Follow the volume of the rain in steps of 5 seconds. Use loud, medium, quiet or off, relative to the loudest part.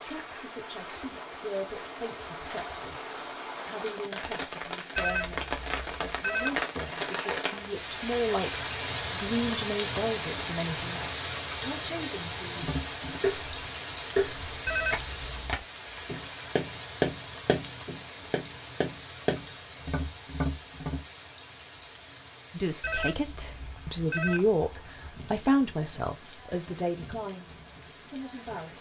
medium, loud, loud, medium, quiet, quiet.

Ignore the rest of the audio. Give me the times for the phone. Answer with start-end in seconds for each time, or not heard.
5.0-6.7, 14.7-15.6, 22.8-24.5.